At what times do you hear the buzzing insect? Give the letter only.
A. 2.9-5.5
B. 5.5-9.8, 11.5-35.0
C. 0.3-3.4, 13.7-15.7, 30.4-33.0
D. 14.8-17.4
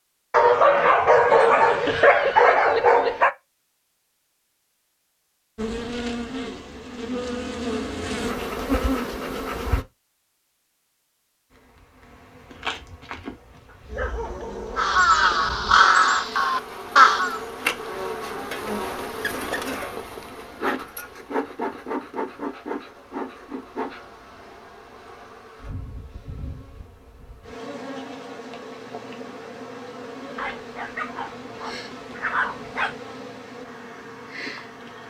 B.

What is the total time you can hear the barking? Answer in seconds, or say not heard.
8 s.